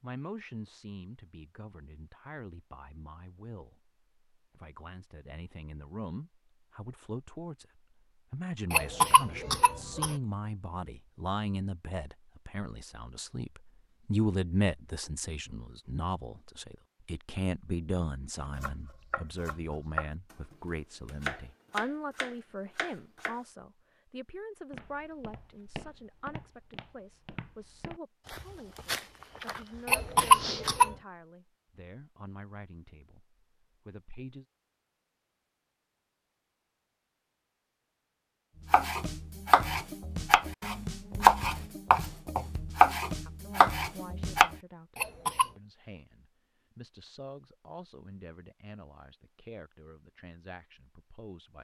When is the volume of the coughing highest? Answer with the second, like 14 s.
30 s.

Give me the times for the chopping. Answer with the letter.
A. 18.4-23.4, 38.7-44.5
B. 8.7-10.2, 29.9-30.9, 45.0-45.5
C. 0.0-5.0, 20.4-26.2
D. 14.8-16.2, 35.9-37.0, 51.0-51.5
A.